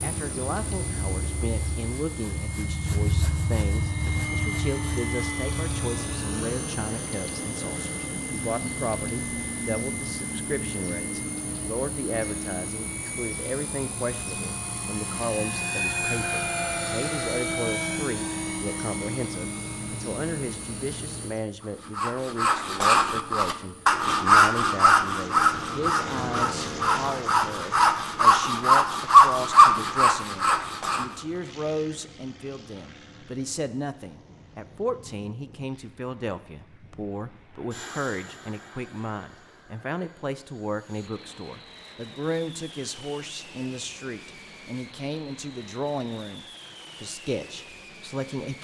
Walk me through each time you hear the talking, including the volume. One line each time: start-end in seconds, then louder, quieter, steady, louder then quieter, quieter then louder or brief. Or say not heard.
0.0-48.6 steady.